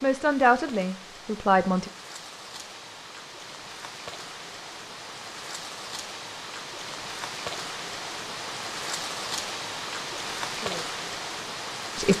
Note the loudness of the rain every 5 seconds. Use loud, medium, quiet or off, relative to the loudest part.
medium, loud, loud.